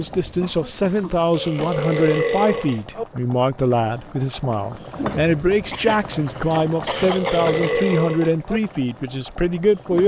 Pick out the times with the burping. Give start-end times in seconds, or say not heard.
1.3-3.0, 6.8-8.6.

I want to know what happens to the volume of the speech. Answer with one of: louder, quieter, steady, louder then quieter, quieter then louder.
steady.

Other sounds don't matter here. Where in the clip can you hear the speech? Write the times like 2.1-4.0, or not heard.
0.0-10.0.